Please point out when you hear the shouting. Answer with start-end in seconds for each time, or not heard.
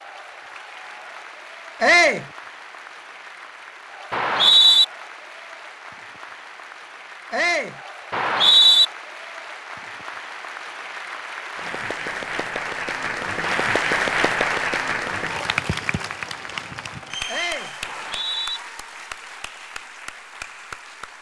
1.8-2.2, 7.3-7.8, 17.2-17.8.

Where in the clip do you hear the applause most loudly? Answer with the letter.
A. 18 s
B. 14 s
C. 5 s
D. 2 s
B.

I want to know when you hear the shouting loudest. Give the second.
2 s.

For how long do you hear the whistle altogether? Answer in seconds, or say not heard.
2 s.